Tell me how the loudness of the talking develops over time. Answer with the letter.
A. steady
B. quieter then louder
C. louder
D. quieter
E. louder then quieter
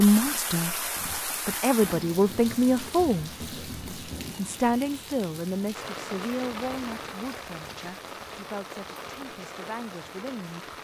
D.